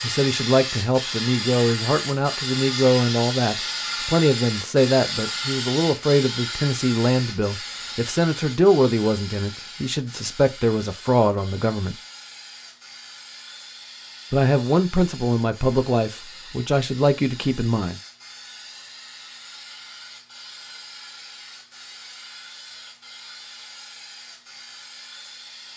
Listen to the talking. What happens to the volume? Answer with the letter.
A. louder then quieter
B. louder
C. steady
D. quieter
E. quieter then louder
C.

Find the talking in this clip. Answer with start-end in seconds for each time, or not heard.
0.0-11.9, 14.3-18.0.